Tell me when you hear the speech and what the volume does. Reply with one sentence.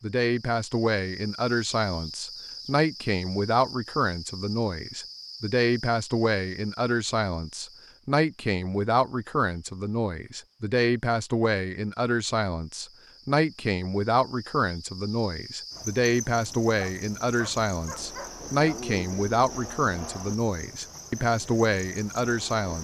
You can hear the speech from 0.0 to 22.7 s, at a steady volume.